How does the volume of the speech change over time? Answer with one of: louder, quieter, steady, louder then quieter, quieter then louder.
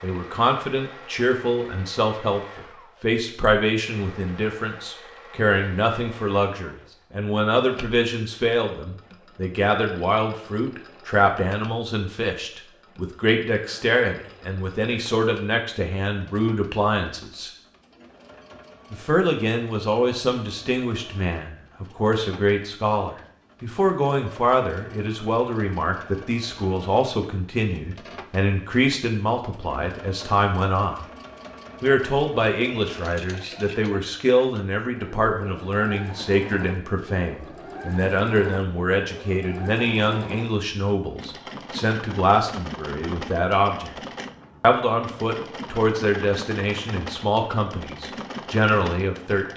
steady.